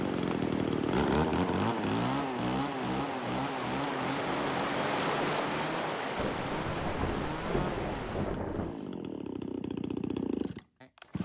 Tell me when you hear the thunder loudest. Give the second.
8 s.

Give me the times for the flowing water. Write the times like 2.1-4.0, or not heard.
0.0-8.4.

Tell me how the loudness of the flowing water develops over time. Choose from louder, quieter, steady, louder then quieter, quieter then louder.
louder then quieter.